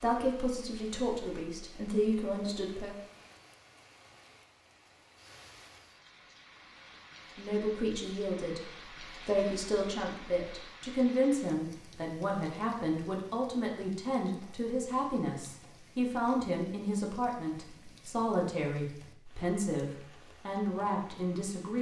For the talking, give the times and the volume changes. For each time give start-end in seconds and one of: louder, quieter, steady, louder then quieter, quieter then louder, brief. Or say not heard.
0.0-3.0 brief
7.3-21.7 steady.